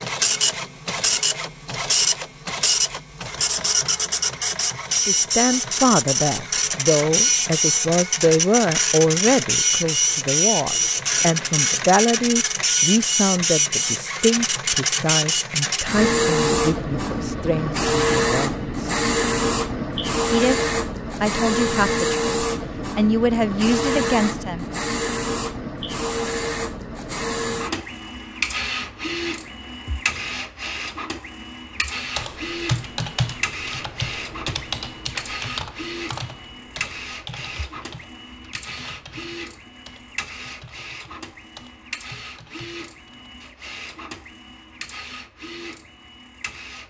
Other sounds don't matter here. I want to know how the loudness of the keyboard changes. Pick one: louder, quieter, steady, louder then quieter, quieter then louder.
quieter.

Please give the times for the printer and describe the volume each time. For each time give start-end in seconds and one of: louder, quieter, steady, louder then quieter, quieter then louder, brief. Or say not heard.
0.0-46.8 quieter.